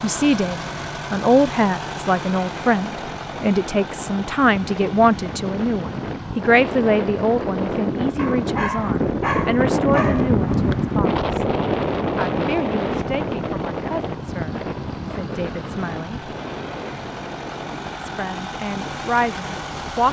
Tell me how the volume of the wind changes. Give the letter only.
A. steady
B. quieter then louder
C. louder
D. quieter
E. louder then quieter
E.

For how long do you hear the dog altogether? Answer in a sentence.
The dog can be heard for 2 seconds in total.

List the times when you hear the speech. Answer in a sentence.
The speech can be heard from 0.0 to 11.4 s, from 12.2 to 16.2 s and from 17.9 to 20.0 s.